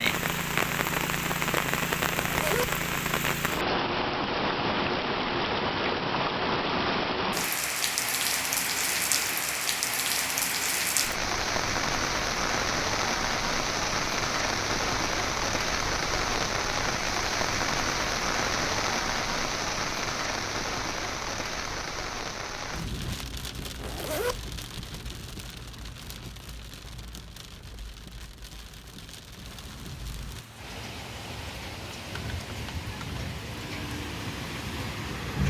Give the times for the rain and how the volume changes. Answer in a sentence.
The rain can be heard from 0.0 to 35.4 s, getting quieter.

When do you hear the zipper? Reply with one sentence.
You can hear the zipper from 2.1 to 2.7 s and from 23.8 to 24.4 s.